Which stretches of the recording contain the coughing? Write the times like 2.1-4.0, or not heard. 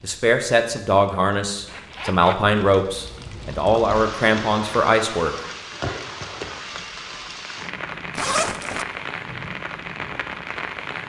not heard.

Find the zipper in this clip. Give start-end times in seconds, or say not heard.
1.6-2.5, 8.2-8.8.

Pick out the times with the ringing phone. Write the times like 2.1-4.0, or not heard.
6.6-7.4.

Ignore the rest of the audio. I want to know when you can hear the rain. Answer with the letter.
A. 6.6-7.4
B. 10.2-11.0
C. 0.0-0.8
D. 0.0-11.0
D.